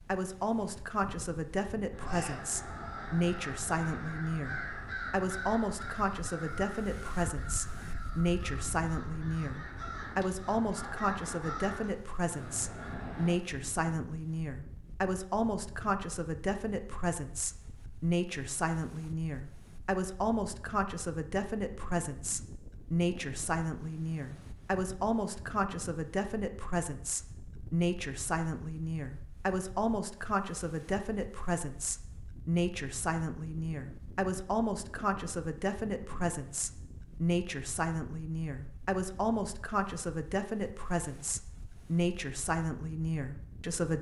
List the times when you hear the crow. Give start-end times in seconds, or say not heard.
1.9-13.3.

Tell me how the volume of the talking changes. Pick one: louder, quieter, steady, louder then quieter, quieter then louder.
steady.